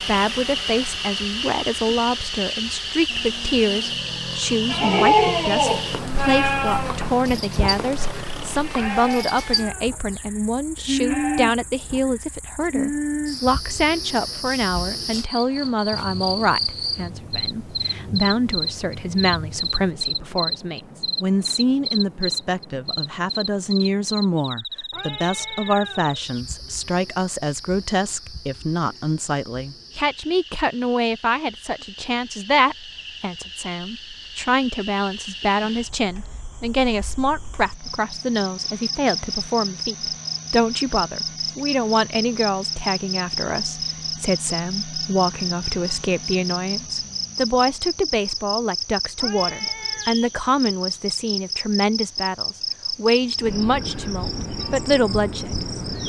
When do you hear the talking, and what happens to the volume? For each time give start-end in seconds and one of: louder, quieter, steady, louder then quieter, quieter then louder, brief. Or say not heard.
0.1-55.6 steady.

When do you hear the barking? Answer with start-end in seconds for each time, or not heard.
not heard.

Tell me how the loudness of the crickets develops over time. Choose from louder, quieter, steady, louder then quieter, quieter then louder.
quieter then louder.